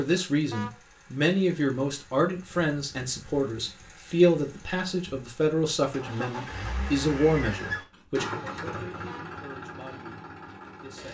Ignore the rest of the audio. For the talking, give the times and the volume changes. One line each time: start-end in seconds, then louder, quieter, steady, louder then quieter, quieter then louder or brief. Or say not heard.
0.0-11.0 quieter.